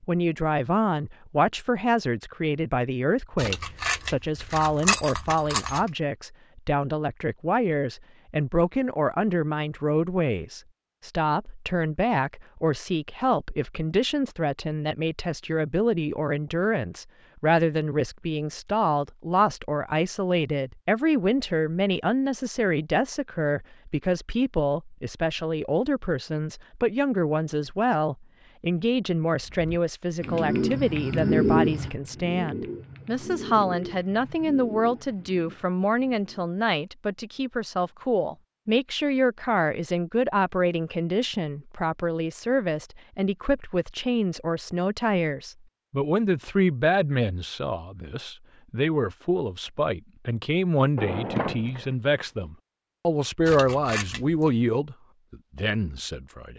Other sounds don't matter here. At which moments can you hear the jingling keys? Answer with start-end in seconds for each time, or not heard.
3.4-5.8, 53.4-54.5.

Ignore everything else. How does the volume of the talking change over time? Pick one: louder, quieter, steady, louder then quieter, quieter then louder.
steady.